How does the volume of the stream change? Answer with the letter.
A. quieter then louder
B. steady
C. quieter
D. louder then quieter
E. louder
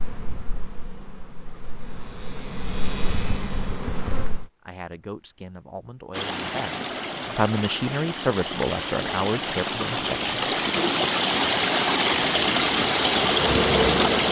E.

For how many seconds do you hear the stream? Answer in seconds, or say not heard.
8 s.